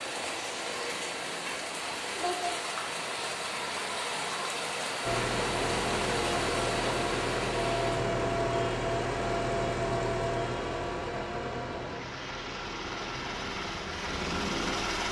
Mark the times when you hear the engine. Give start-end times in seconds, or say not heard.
5.0-15.0.